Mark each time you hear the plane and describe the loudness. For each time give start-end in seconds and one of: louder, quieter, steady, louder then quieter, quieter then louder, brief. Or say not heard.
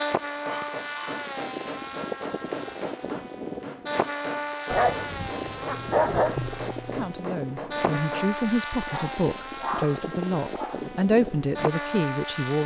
0.0-12.6 steady.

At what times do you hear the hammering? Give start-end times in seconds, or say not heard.
0.5-8.3.